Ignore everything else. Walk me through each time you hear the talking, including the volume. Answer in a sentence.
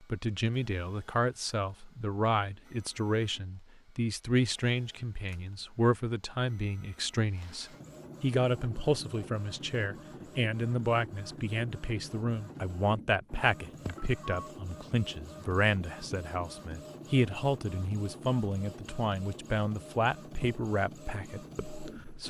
You can hear the talking from 0.0 to 22.2 s, at a steady volume.